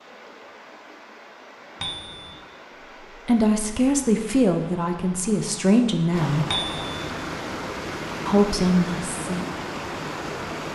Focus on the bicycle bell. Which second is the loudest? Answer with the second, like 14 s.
7 s.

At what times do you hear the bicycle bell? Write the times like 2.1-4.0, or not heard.
1.8-2.4, 6.5-7.0.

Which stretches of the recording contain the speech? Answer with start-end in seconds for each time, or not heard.
3.2-6.5, 8.2-9.4.